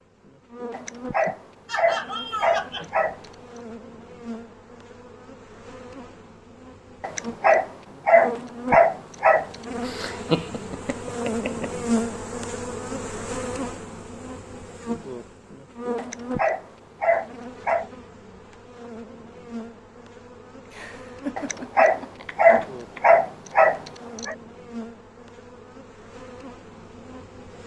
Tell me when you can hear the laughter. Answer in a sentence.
You can hear the laughter from 1.2 to 2.9 s, from 9.8 to 11.7 s and from 20.7 to 23.1 s.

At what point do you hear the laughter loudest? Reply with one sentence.
The volume of the laughter peaks at 10 seconds.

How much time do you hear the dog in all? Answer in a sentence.
You can hear the dog for 10 seconds altogether.